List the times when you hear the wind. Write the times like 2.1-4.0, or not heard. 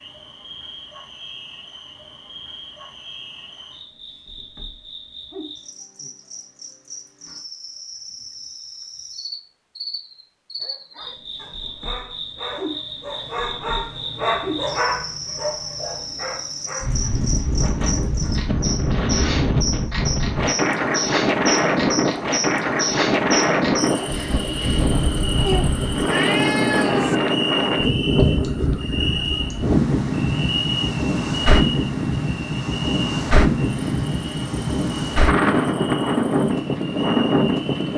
16.8-37.9.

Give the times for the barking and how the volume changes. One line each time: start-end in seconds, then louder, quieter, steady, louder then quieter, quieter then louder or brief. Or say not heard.
10.6-17.1 louder then quieter.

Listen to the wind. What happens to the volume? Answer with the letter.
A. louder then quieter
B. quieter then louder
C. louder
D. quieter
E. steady
E.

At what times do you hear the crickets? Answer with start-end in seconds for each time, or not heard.
0.0-37.9.